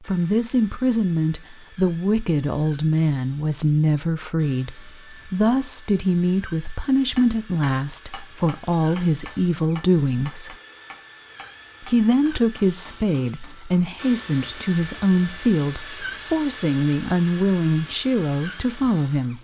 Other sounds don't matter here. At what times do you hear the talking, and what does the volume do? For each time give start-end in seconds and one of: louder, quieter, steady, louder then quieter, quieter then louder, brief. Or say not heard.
0.0-10.6 steady
11.8-19.3 steady.